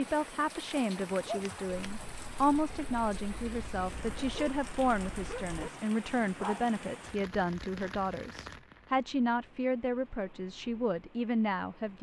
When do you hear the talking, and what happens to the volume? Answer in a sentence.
The talking can be heard from 0.0 to 11.9 s, at a steady volume.